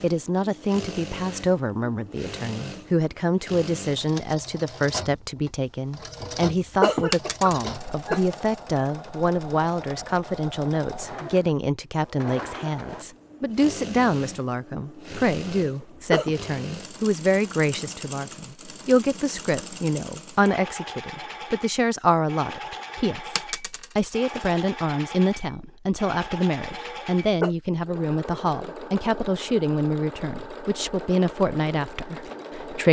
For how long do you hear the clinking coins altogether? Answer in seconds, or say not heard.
3 s.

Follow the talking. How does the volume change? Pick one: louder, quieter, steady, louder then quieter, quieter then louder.
steady.